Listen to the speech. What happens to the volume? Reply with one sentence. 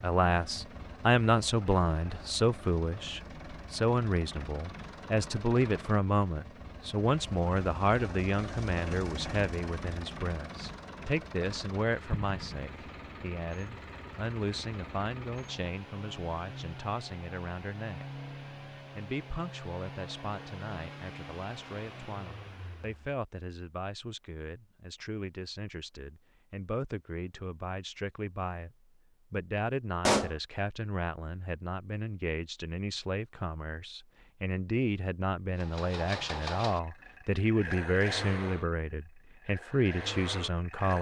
The loudness of the speech goes down, then up.